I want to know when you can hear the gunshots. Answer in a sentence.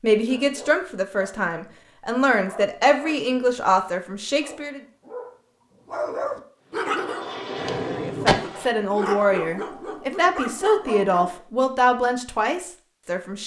You can hear the gunshots from 7.5 to 8.7 s.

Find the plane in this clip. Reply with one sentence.
You can hear the plane from 6.5 to 8.3 s.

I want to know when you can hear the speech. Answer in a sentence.
You can hear the speech from 0.0 to 4.8 s and from 7.8 to 13.4 s.